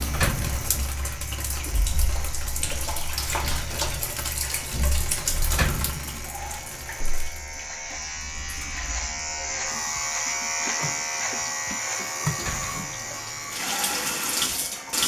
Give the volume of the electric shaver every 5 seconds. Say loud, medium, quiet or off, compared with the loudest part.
medium, loud, loud.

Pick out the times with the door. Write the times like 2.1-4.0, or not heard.
0.1-0.8, 5.5-6.2, 12.3-12.9.